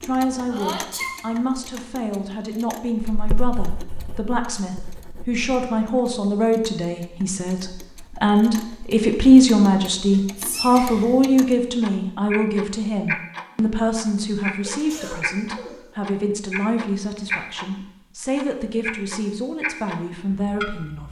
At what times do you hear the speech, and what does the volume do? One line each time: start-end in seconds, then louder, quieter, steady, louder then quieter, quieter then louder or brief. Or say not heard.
0.0-21.0 louder then quieter.